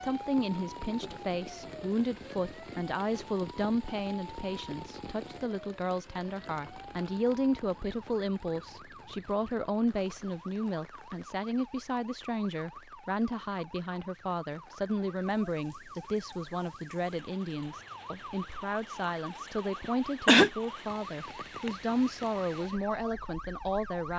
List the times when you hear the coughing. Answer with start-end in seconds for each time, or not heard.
19.8-20.5.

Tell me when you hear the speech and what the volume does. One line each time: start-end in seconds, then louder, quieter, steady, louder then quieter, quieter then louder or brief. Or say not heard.
0.0-24.1 steady.